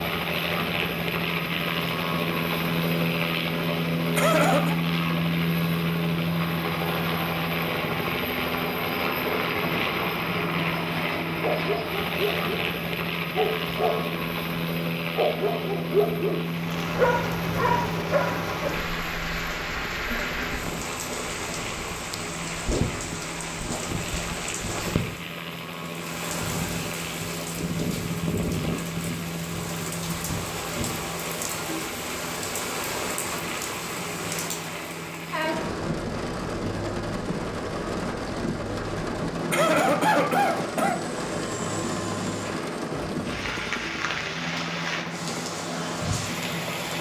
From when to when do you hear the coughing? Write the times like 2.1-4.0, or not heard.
4.2-4.8, 39.5-41.0.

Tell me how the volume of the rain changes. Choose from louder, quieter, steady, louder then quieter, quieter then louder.
steady.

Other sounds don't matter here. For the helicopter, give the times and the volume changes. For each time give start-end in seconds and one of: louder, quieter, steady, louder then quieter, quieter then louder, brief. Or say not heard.
0.0-46.9 quieter.